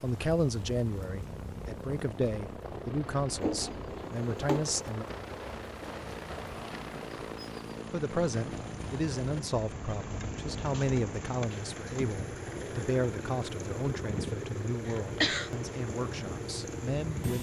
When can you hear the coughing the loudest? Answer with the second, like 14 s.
15 s.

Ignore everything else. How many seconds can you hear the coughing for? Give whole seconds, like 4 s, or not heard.
2 s.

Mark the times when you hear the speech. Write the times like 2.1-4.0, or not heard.
0.0-5.0, 7.9-17.3.